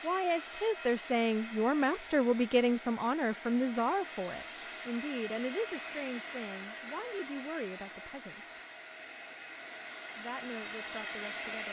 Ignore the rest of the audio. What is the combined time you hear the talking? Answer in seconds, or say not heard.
10 s.